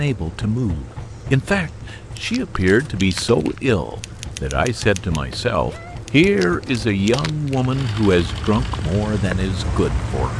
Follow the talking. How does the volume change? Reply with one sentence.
The volume of the talking stays about the same.